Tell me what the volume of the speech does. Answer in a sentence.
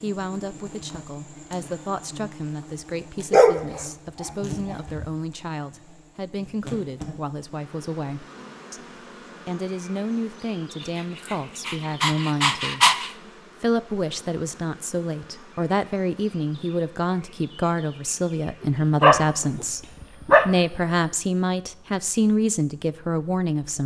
The volume of the speech goes up.